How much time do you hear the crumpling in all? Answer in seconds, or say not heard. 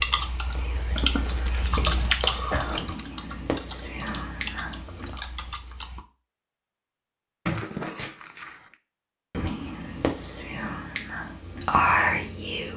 2 s.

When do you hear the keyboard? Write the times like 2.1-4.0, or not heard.
0.0-6.0.